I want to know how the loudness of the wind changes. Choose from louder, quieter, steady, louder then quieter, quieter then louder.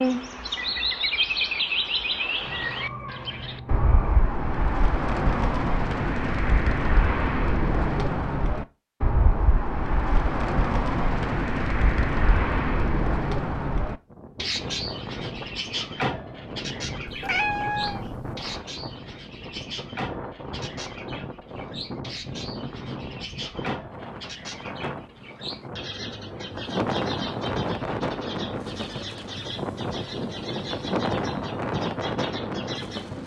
louder.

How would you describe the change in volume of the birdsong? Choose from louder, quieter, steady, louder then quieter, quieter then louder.
quieter.